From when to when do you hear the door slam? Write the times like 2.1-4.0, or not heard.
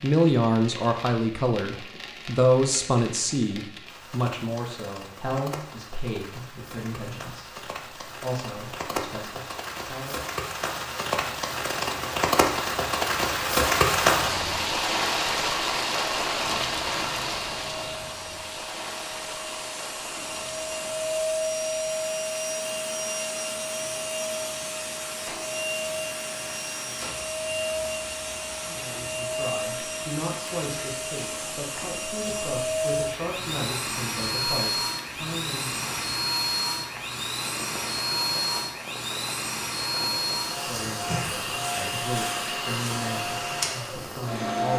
not heard.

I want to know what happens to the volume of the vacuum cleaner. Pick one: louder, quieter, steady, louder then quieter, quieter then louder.
steady.